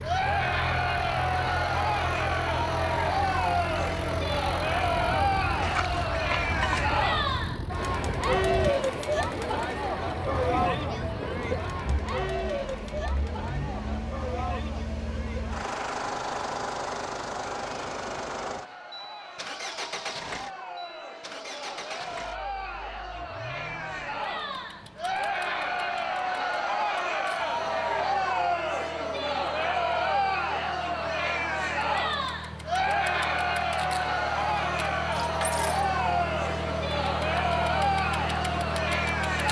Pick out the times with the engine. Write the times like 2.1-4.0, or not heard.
0.0-39.4.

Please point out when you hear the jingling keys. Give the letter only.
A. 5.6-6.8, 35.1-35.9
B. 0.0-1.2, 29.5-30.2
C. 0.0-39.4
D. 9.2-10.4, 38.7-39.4
A.